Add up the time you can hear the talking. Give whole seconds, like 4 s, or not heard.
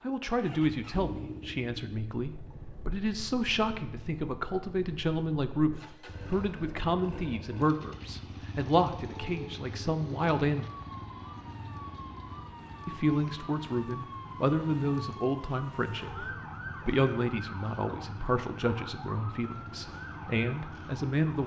19 s.